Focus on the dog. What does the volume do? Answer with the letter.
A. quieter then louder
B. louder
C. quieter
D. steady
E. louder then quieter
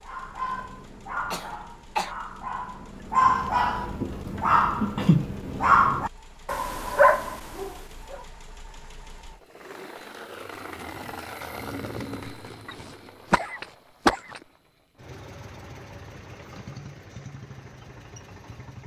B.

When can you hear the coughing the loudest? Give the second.
14 s.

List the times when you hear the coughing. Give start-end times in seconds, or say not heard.
1.3-2.1, 12.7-14.4.